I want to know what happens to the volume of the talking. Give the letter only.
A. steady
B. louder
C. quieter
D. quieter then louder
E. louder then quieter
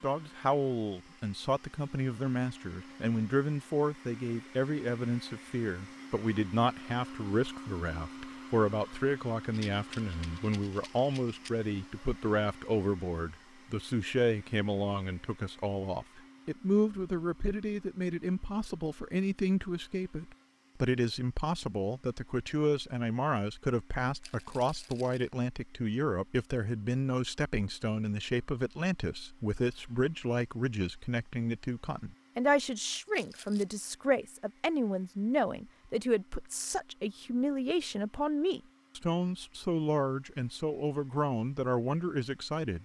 A.